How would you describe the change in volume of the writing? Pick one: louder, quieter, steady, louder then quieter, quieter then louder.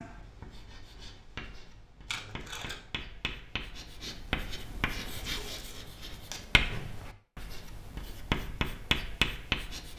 louder.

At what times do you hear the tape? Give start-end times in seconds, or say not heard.
2.0-2.9, 5.3-6.4.